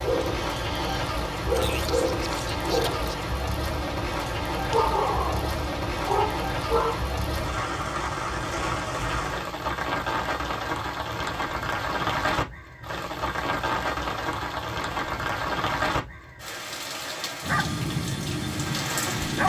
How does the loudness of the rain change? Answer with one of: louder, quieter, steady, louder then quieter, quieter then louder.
steady.